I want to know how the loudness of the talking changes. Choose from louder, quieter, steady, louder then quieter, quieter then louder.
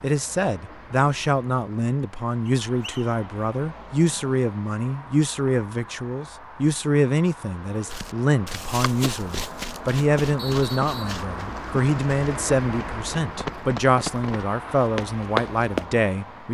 steady.